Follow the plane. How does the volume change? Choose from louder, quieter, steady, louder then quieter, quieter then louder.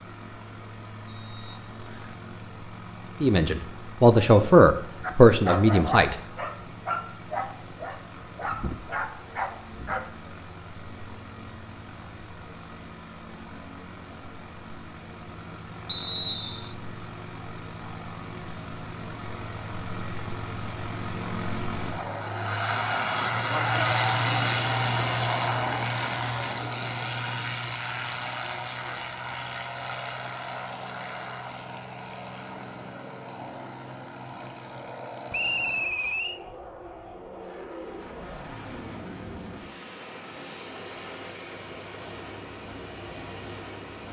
louder then quieter.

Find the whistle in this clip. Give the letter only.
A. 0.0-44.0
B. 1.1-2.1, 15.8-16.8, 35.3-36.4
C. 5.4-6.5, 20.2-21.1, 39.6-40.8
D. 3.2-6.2
B.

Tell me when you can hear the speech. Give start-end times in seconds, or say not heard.
3.2-6.2.